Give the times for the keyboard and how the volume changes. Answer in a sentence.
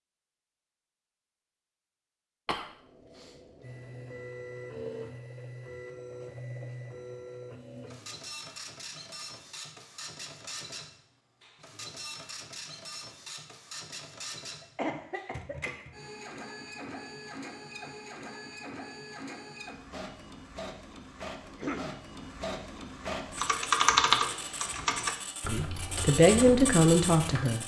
The keyboard can be heard from 23.4 to 27.4 s, getting quieter.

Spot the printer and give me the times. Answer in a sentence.
You can hear the printer from 3.6 to 27.6 s.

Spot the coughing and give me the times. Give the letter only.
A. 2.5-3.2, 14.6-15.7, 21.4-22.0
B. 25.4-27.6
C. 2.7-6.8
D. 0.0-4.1
A.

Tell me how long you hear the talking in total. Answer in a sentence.
The talking can be heard for 2 seconds in total.